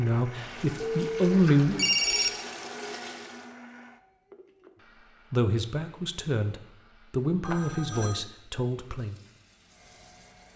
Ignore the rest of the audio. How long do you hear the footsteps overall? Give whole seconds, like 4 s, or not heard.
not heard.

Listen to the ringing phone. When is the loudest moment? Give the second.
2 s.